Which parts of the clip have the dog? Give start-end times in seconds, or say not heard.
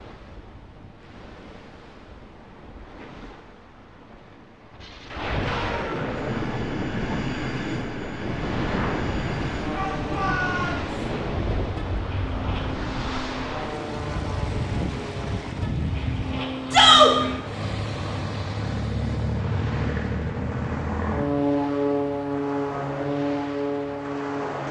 not heard.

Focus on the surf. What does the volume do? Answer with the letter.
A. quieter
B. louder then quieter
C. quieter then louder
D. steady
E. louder
B.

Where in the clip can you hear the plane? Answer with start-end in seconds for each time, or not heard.
6.1-24.6.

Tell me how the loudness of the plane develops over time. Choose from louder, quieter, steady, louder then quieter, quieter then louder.
louder.